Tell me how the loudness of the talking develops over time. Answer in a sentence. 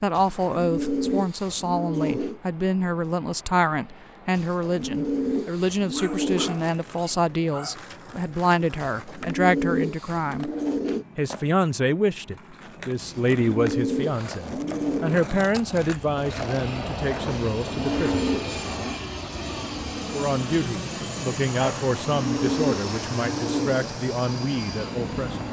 The loudness of the talking stays about the same.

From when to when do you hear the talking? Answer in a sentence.
The talking can be heard from 0.0 to 10.5 s, from 11.2 to 18.2 s and from 20.1 to 25.4 s.